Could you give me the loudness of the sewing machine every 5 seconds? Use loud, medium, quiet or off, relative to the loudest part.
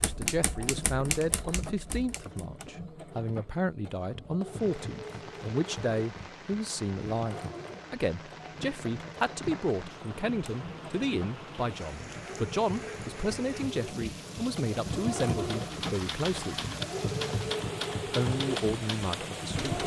medium, medium, medium, loud.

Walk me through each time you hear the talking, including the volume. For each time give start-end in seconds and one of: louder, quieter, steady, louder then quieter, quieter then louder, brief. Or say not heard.
0.0-16.6 steady
18.1-19.8 brief.